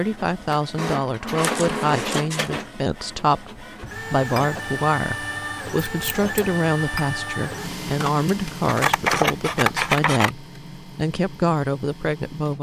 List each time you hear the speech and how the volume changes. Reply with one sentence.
The speech can be heard from 0.0 to 12.5 s, at a steady volume.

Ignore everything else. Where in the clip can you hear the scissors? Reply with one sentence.
The scissors can be heard from 1.4 to 2.5 s, from 5.8 to 6.3 s and from 8.7 to 10.3 s.